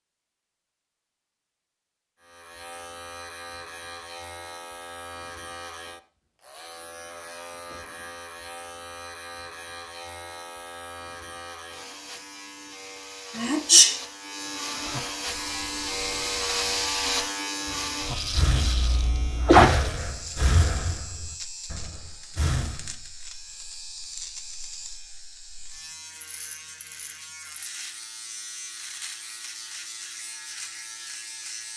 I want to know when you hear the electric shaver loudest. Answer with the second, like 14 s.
17 s.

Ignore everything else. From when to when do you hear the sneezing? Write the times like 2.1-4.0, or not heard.
13.3-13.9, 18.6-19.6.